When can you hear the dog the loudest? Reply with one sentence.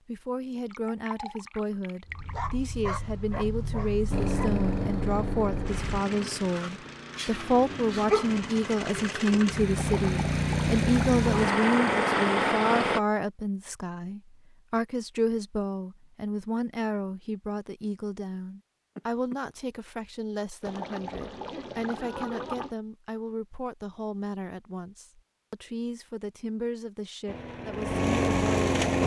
The loudest moment of the dog is at 8 seconds.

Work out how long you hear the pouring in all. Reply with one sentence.
You can hear the pouring for 6 seconds altogether.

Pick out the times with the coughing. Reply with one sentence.
You can hear the coughing from 18.9 to 19.4 s.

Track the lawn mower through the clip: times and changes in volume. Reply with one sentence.
You can hear the lawn mower from 4.1 to 13.0 s, getting quieter then louder; and briefly from 27.2 to 29.0 s.